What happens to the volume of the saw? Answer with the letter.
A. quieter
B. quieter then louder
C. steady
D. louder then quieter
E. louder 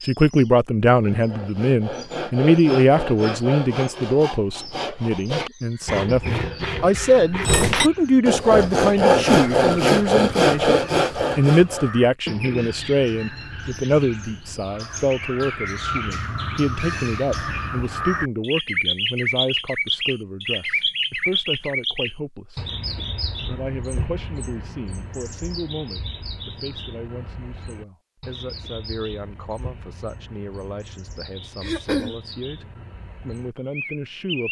E.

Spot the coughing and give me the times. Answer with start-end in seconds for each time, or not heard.
31.6-32.2.